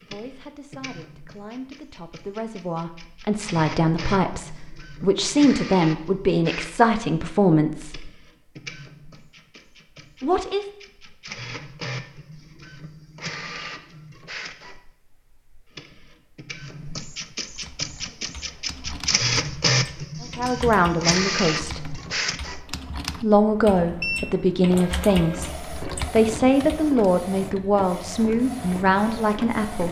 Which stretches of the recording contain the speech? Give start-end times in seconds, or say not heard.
0.0-8.1, 10.2-10.7, 20.2-22.0, 23.1-29.8.